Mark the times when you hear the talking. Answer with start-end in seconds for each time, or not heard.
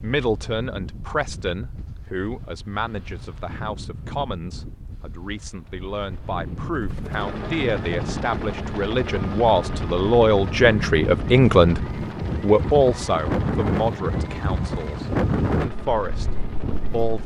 0.0-11.8, 12.4-17.2.